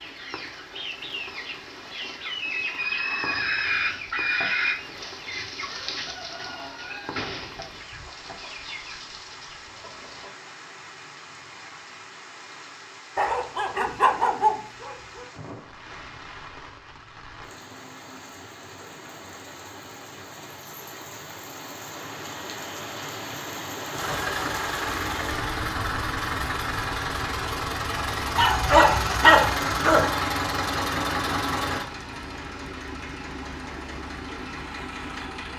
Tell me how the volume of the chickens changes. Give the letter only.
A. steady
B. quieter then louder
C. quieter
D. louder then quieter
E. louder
D.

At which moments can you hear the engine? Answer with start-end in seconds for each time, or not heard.
23.9-35.5.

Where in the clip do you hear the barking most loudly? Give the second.
29 s.